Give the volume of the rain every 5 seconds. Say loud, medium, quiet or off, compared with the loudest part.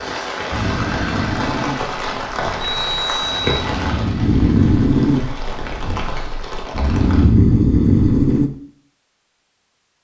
loud, medium.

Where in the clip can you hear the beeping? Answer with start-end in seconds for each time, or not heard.
2.6-3.6.